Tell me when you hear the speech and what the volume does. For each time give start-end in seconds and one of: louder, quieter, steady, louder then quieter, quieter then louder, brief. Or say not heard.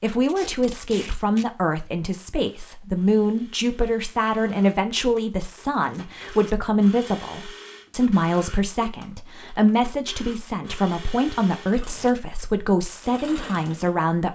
0.0-14.2 steady.